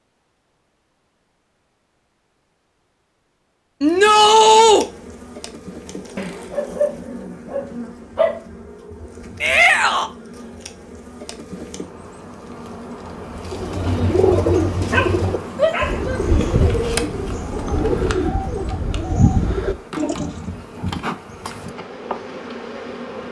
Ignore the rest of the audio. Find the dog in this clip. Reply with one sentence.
The dog can be heard from 6.2 to 8.4 s and from 14.1 to 16.1 s.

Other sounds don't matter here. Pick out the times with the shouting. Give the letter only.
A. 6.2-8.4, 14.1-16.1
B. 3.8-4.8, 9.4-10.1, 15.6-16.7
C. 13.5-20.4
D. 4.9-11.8
B.